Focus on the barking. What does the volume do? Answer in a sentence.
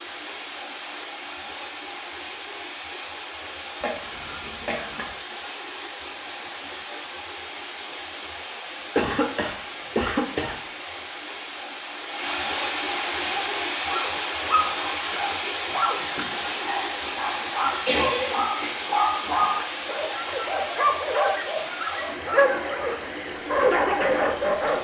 The loudness of the barking goes up.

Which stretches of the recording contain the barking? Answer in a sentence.
You can hear the barking from 13.2 to 24.7 s.